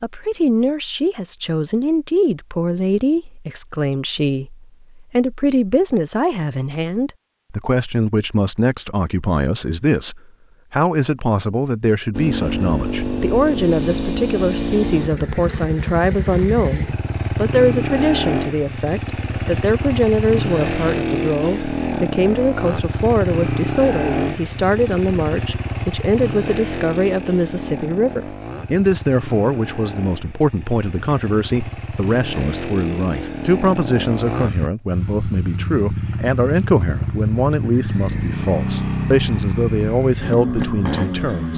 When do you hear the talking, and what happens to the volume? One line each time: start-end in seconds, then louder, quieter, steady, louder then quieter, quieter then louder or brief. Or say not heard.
0.0-41.5 steady.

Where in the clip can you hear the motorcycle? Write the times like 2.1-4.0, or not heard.
12.1-41.5.